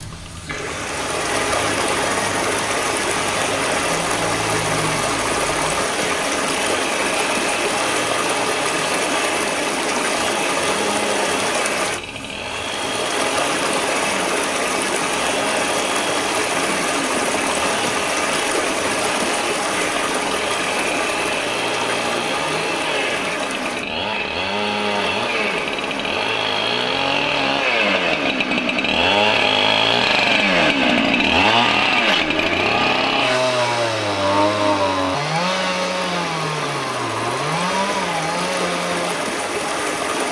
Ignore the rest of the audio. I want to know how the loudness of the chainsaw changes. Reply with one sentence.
The loudness of the chainsaw goes up.